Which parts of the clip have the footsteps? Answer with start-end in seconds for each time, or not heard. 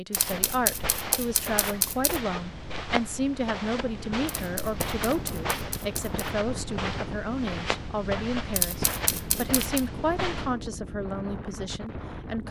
0.1-10.6.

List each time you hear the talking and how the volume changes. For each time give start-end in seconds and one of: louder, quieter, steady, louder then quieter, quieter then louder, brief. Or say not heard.
0.0-12.4 steady.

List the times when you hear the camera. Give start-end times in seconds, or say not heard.
0.1-2.2, 4.2-6.3, 8.6-9.8.